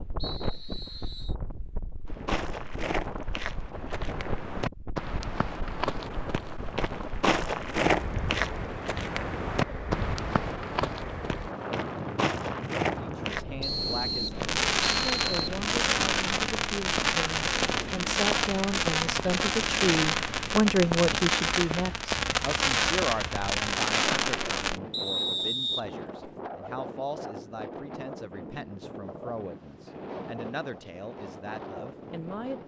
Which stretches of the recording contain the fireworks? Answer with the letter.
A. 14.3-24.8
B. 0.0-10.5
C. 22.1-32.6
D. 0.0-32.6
A.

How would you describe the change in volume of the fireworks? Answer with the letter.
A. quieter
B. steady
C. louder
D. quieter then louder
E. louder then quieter
B.